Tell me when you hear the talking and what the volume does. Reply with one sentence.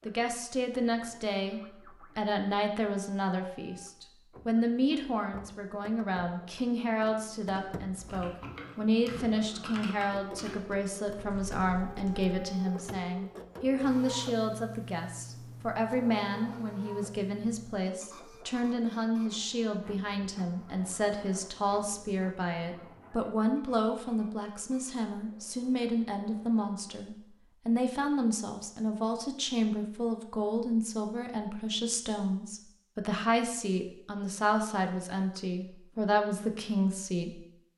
The talking can be heard from 0.1 to 37.5 s, at a steady volume.